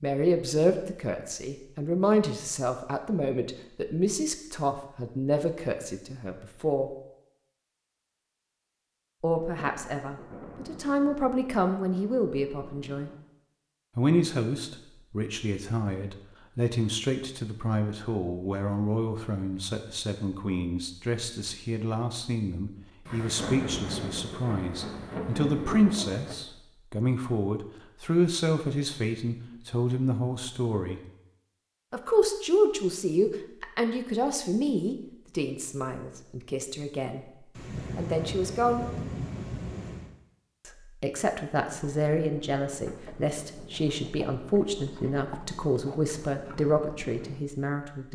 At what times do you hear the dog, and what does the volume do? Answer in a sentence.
The dog can't be heard in this clip.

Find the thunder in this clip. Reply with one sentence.
The thunder can be heard from 9.3 to 13.2 s, from 23.1 to 26.4 s and from 37.5 to 40.1 s.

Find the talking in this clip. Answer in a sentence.
The talking can be heard from 0.0 to 6.9 s, from 9.2 to 13.1 s, from 13.9 to 31.0 s, from 31.9 to 38.9 s and from 40.6 to 48.1 s.